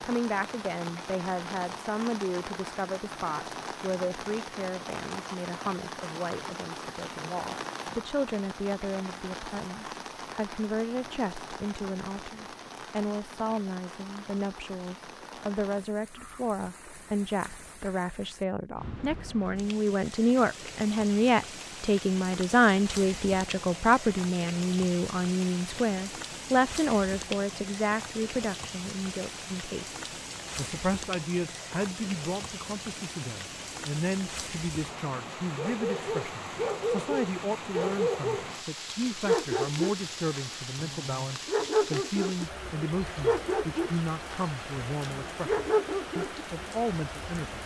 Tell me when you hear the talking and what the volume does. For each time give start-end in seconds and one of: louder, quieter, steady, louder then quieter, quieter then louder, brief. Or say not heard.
0.0-47.6 louder then quieter.